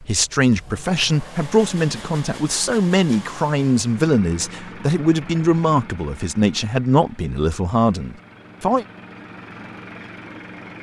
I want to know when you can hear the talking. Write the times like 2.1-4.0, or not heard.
0.0-8.8.